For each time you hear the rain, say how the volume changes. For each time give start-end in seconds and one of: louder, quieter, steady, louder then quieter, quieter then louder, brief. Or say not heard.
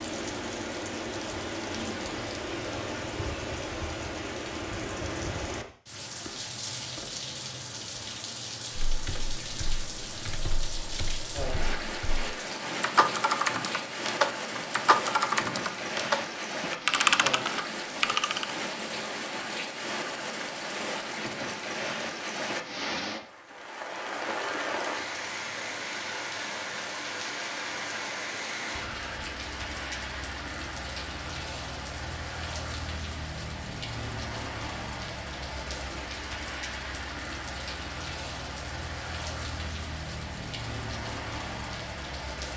0.0-42.5 steady.